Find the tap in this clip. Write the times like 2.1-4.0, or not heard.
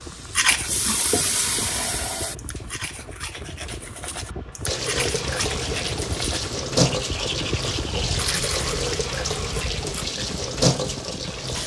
0.0-2.4, 4.7-11.6.